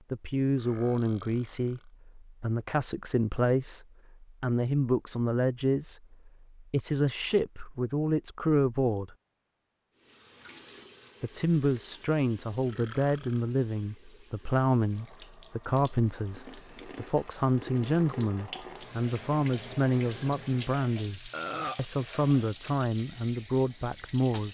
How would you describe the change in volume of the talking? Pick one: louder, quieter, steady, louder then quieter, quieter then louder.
steady.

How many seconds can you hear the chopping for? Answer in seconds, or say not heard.
not heard.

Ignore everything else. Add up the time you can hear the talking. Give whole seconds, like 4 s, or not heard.
22 s.